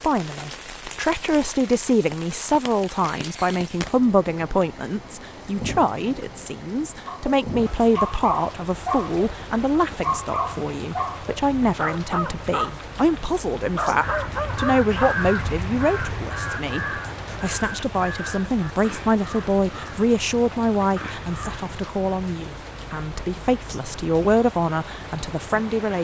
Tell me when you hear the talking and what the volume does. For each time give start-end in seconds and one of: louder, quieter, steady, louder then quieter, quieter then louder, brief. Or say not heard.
0.0-26.0 steady.